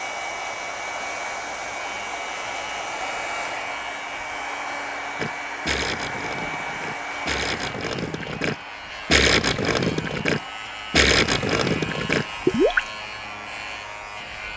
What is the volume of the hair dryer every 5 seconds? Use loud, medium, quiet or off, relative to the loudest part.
loud, loud, medium.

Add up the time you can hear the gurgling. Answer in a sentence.
The gurgling can be heard for 8 seconds in total.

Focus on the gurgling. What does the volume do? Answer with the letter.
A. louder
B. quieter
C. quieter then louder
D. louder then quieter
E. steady
A.